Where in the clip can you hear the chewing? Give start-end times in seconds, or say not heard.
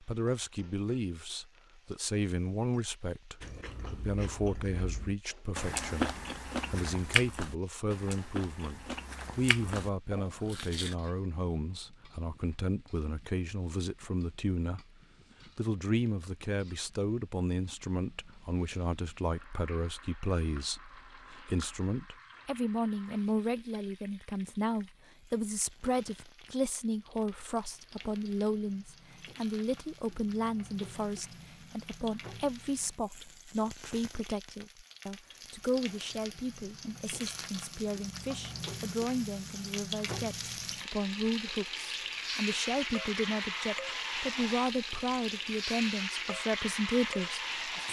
3.4-10.9.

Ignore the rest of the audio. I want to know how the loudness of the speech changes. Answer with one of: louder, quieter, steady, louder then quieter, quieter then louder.
steady.